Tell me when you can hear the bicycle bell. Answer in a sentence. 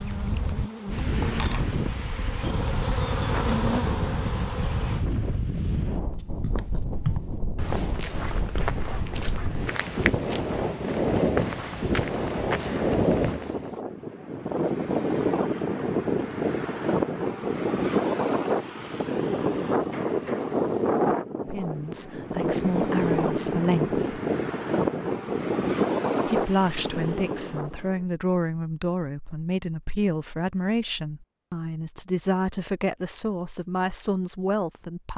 The bicycle bell can't be heard in this clip.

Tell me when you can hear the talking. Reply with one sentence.
You can hear the talking from 21.4 to 24.2 s and from 26.2 to 35.1 s.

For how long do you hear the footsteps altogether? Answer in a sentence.
The footsteps can be heard for 8 seconds in total.